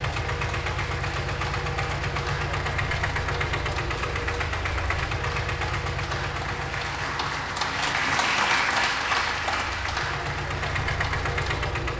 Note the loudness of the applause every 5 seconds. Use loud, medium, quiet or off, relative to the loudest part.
medium, loud, medium.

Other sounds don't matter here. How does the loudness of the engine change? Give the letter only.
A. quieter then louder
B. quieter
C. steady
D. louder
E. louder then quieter
A.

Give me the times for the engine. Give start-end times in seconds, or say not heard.
0.0-11.9.